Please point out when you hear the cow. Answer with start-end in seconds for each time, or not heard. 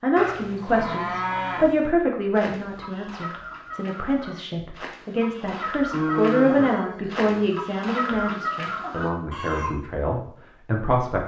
0.1-1.9, 5.9-7.5.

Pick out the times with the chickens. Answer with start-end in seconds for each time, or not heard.
2.4-9.7.